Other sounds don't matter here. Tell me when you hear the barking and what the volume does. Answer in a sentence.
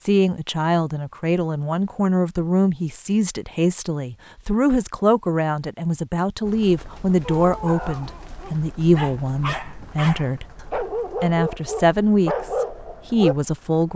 The barking can be heard from 7.2 to 13.3 s, getting louder.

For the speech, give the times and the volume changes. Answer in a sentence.
The speech can be heard from 0.0 to 13.9 s, at a steady volume.